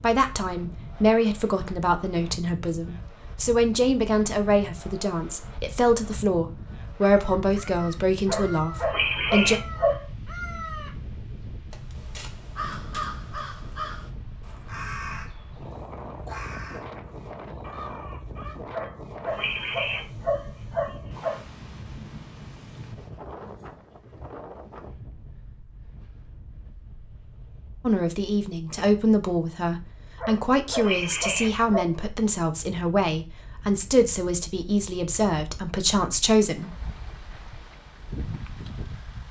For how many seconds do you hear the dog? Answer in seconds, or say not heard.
6 s.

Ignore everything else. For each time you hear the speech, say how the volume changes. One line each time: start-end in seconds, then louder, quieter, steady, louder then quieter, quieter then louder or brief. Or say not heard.
0.0-9.6 steady
27.8-36.8 steady.